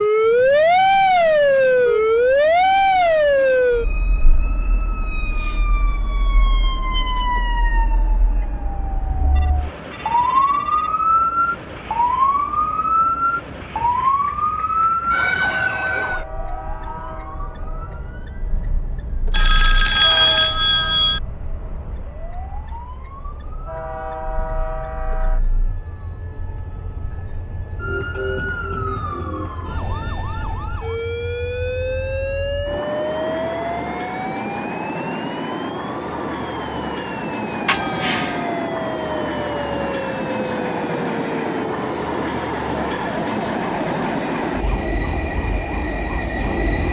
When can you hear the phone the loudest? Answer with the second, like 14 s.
20 s.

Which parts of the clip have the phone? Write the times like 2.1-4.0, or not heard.
9.3-10.9, 19.3-21.2, 37.6-38.5.